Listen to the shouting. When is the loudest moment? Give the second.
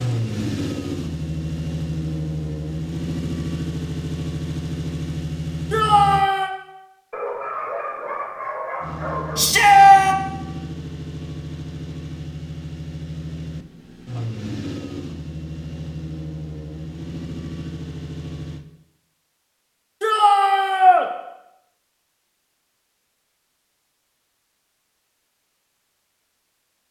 10 s.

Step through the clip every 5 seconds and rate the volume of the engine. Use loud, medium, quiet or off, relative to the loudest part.
loud, loud, medium, medium, off, off.